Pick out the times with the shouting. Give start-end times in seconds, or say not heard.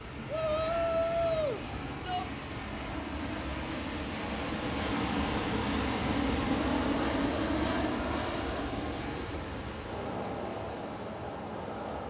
0.2-2.2.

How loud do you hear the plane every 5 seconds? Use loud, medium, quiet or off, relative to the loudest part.
medium, loud, medium.